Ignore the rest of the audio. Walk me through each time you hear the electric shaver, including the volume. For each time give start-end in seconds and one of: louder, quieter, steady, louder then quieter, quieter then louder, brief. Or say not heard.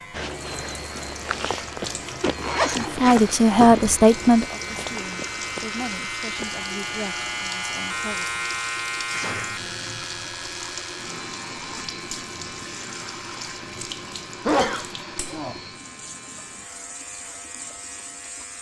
0.0-18.5 louder then quieter.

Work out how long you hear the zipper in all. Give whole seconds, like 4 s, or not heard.
2 s.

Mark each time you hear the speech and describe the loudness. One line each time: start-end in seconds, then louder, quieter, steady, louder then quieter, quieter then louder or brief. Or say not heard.
2.8-8.3 quieter.